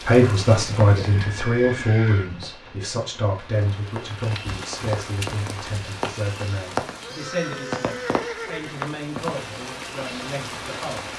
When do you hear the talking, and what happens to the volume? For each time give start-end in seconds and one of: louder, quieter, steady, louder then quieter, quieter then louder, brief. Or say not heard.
0.1-11.1 quieter.